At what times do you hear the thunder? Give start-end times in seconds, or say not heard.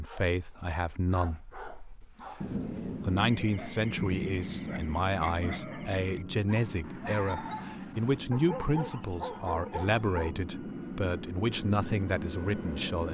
2.4-5.5.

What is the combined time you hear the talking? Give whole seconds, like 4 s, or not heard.
13 s.